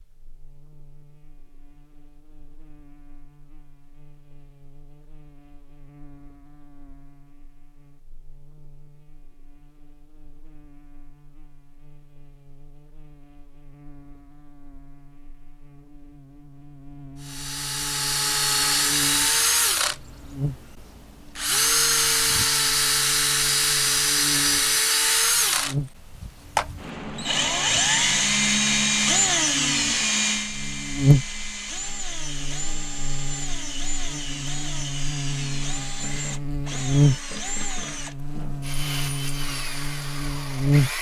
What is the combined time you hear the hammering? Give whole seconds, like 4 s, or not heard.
not heard.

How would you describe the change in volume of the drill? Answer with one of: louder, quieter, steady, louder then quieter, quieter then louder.
quieter.